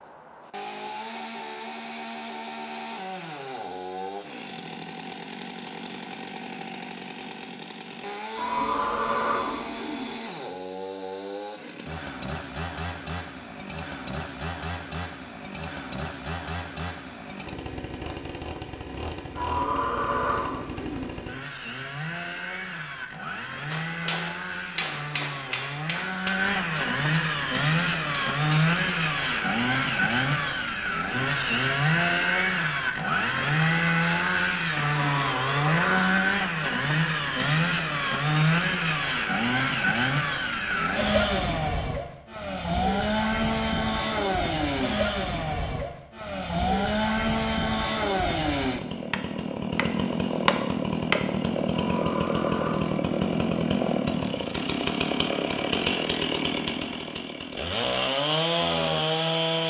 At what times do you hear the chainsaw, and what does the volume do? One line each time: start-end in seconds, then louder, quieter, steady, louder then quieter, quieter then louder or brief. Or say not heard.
0.0-59.6 louder.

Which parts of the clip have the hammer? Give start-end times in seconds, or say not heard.
23.7-29.6.